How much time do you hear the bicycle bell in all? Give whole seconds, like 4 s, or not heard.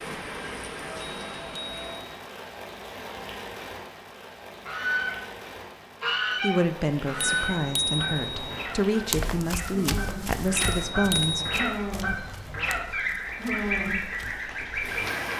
4 s.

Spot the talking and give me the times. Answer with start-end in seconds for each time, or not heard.
6.4-12.0.